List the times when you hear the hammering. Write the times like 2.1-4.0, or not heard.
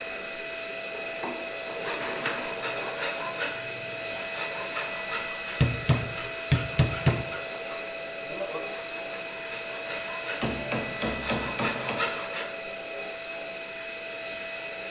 0.9-2.5, 5.6-7.2, 10.4-12.1.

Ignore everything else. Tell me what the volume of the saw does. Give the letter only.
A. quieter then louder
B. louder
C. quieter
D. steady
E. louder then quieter
A.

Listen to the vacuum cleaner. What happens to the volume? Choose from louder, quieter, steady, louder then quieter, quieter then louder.
steady.